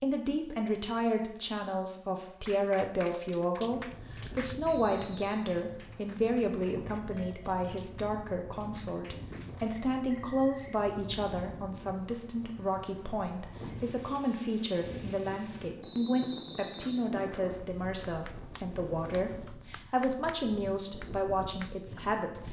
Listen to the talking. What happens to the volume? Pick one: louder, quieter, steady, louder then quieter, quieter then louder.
steady.